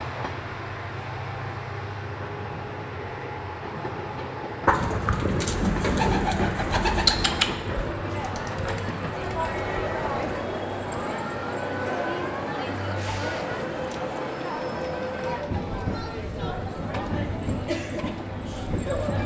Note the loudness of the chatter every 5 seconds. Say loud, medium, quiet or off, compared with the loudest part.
off, loud, loud, loud.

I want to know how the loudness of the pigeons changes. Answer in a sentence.
The loudness of the pigeons goes down.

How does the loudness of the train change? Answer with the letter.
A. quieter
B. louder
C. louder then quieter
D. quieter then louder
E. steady
E.